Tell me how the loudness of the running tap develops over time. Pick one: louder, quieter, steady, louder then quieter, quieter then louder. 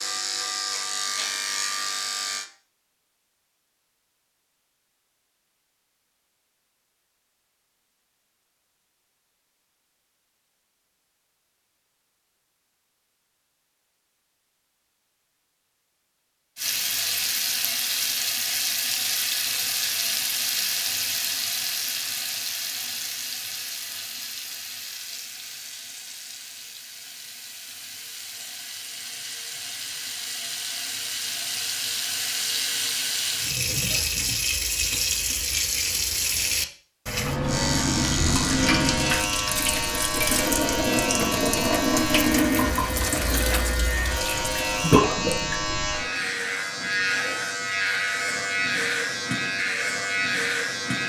quieter then louder.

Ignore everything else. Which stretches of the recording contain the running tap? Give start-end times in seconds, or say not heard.
16.6-45.7.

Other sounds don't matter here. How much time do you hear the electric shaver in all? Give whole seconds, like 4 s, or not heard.
16 s.